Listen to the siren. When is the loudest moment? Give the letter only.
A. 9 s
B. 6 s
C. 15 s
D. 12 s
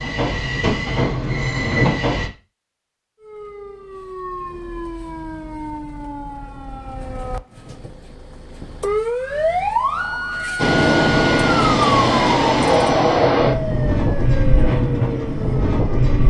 A.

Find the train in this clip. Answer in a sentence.
You can hear the train from 0.0 to 2.3 s and from 10.6 to 16.2 s.